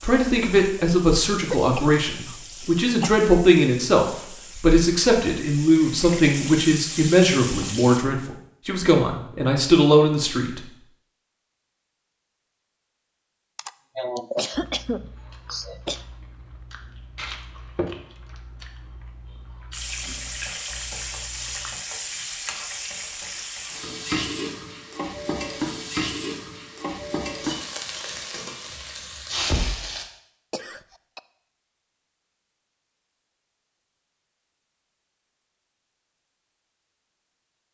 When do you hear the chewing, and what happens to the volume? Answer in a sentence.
You can hear the chewing from 14.5 to 21.8 s, getting louder then quieter.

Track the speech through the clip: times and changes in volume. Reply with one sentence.
The speech can be heard from 0.0 to 10.6 s, at a steady volume.